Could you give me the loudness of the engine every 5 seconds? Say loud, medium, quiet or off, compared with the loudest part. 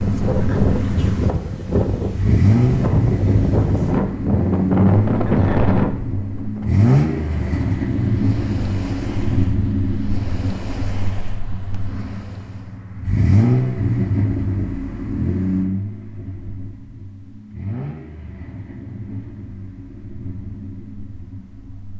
loud, loud, loud, medium, quiet.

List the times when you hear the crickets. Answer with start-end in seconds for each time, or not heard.
not heard.